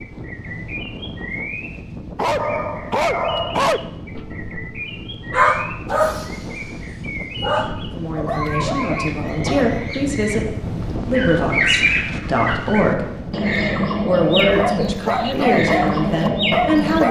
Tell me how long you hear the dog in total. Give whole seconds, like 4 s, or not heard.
10 s.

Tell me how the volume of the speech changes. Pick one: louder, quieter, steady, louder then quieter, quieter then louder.
louder.